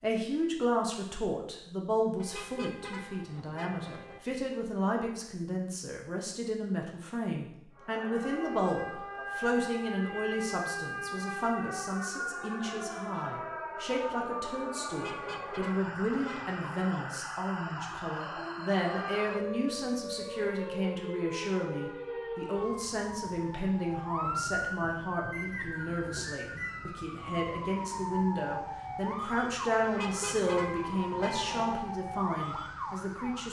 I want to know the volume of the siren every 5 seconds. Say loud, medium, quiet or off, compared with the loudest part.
off, loud, loud, loud, loud, loud, loud.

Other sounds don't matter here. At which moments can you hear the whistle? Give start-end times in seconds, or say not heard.
25.3-26.8.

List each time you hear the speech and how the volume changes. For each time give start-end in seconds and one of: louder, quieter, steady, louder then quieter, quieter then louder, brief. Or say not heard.
0.0-33.4 steady.